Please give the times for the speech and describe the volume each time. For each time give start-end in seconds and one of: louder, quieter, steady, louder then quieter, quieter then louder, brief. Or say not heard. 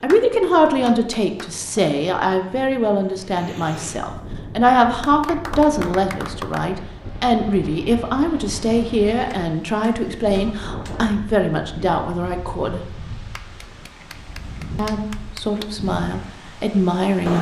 0.0-12.8 steady
14.8-17.3 brief.